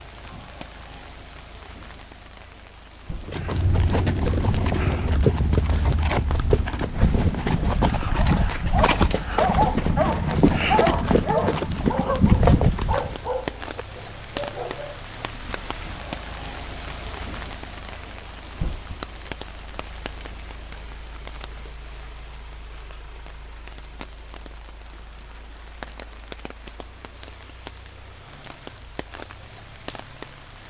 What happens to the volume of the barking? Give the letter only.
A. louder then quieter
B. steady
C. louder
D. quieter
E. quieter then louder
D.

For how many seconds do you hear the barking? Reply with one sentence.
The barking can be heard for 7 seconds in total.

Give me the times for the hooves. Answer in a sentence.
The hooves can be heard from 3.2 to 13.3 s.